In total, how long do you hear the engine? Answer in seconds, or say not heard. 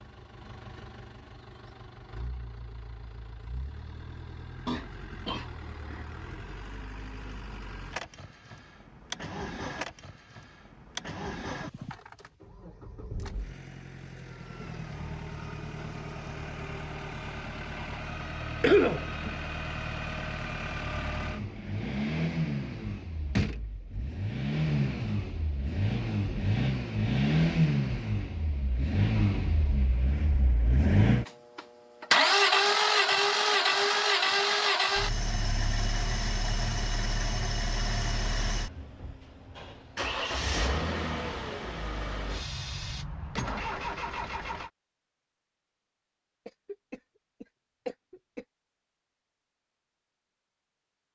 45 s.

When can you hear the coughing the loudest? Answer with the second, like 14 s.
19 s.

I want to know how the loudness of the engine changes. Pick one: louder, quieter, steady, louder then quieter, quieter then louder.
louder then quieter.